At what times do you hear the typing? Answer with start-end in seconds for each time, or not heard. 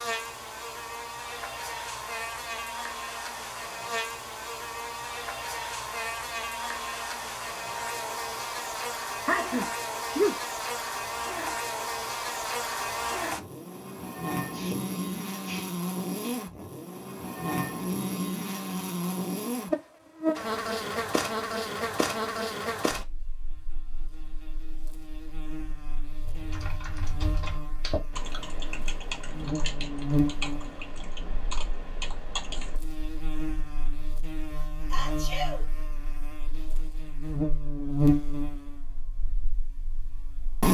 26.2-32.8.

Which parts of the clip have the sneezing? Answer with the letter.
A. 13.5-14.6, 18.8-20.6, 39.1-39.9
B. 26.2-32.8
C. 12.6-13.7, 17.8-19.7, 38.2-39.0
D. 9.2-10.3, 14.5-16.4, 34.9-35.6
D.